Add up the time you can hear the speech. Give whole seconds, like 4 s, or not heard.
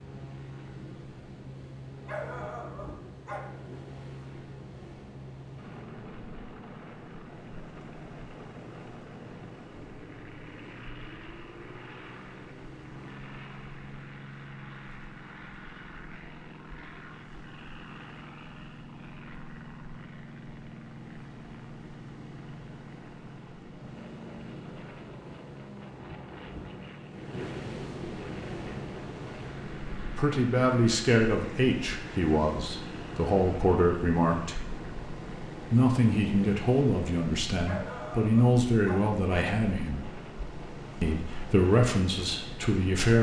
11 s.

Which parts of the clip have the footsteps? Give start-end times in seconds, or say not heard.
not heard.